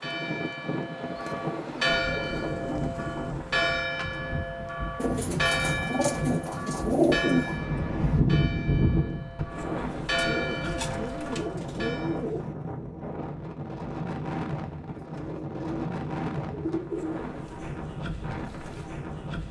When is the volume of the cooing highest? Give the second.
7 s.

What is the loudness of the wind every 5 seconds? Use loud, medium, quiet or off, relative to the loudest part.
medium, loud, medium, medium.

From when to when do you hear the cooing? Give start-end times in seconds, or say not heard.
1.1-3.2, 5.0-7.5, 9.8-12.4, 14.9-17.7.